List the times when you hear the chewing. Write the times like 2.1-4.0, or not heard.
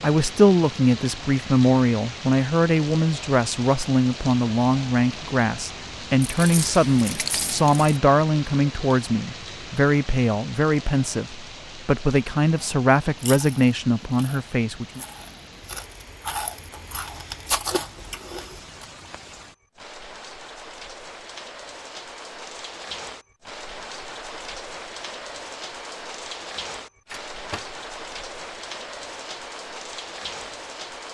13.2-18.9.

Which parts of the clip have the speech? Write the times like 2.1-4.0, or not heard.
0.0-15.0.